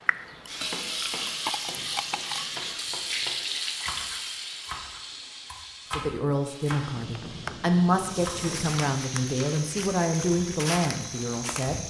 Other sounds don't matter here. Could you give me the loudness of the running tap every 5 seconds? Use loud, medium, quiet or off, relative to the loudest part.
loud, quiet, off.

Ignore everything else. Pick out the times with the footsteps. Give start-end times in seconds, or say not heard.
7.9-11.8.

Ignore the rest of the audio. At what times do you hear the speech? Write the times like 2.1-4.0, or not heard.
5.9-11.8.